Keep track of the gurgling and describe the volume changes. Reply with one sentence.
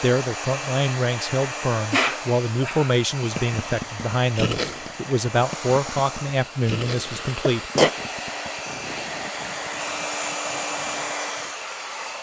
The volume of the gurgling goes down.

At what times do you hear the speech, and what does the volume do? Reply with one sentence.
You can hear the speech from 0.0 to 8.1 s, at a steady volume.